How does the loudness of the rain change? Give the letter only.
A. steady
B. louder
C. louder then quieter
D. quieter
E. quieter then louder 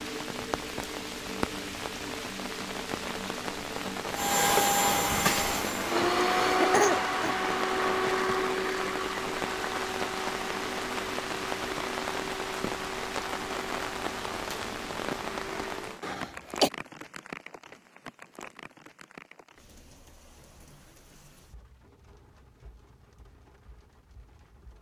D.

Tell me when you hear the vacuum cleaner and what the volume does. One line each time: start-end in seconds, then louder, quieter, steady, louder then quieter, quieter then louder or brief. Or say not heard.
4.1-15.9 quieter.